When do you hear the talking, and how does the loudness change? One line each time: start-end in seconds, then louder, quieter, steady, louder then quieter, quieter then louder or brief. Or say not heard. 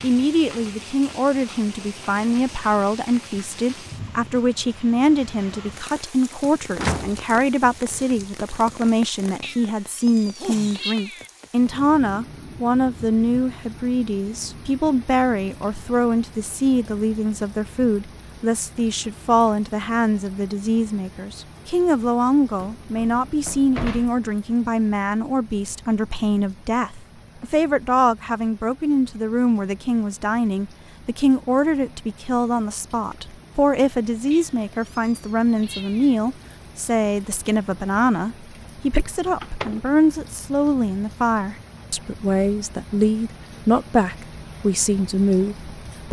0.0-46.0 steady.